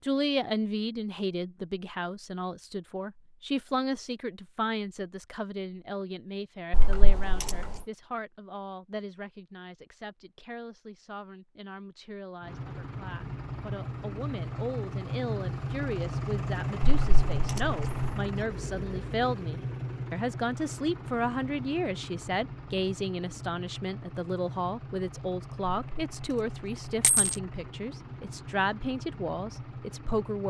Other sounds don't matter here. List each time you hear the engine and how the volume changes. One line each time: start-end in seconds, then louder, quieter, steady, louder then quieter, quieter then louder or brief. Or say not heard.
12.4-30.4 quieter.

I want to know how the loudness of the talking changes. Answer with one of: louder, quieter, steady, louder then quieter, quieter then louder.
quieter then louder.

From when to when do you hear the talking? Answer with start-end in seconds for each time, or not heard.
0.0-30.4.